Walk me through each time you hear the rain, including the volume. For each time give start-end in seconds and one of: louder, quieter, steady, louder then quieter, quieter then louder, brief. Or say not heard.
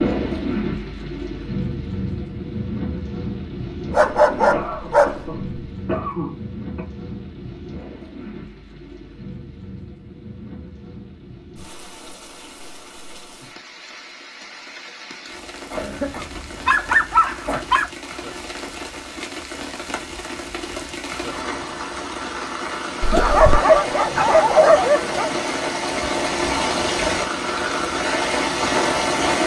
0.0-29.4 quieter then louder.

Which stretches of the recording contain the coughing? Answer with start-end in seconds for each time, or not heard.
4.5-6.9, 15.7-17.6, 23.0-23.6.